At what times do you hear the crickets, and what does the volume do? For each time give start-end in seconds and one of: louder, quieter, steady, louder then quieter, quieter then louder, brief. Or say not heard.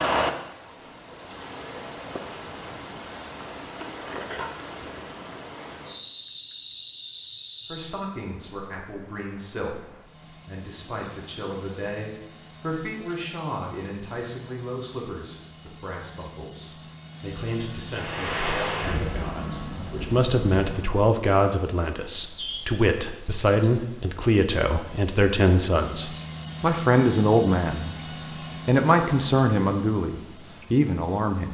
0.0-31.5 louder.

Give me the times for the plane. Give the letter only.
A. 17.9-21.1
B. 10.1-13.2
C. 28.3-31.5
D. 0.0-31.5
A.